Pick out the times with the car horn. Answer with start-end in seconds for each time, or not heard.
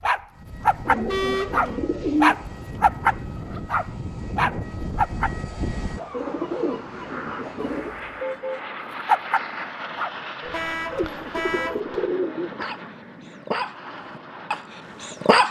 1.1-1.6, 7.8-8.6, 10.5-11.8.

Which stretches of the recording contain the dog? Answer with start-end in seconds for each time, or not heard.
0.0-5.3, 9.1-15.4.